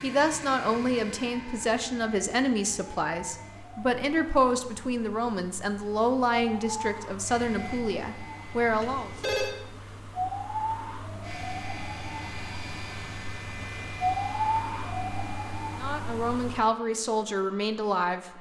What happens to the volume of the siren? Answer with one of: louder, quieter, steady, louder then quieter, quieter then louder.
louder.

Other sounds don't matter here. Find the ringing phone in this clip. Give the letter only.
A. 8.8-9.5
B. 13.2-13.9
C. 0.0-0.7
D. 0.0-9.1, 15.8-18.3
A.